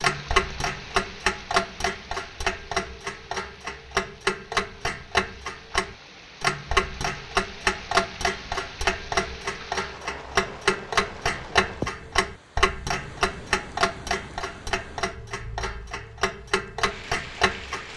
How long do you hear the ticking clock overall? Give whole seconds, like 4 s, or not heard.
18 s.